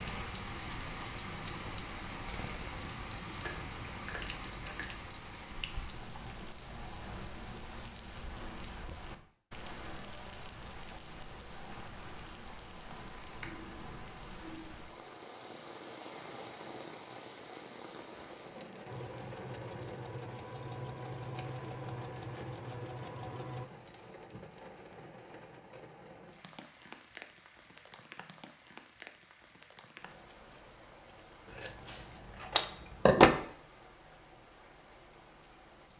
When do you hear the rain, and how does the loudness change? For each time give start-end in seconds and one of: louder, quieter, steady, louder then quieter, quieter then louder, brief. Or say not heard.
0.0-35.9 quieter.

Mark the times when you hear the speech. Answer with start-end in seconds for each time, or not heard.
not heard.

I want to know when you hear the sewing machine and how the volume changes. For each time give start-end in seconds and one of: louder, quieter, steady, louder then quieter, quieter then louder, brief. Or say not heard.
18.9-23.7 steady.